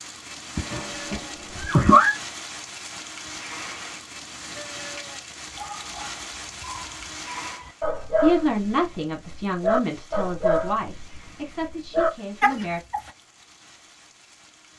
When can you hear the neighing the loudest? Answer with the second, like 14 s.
2 s.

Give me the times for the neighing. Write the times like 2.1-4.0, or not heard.
0.6-2.1.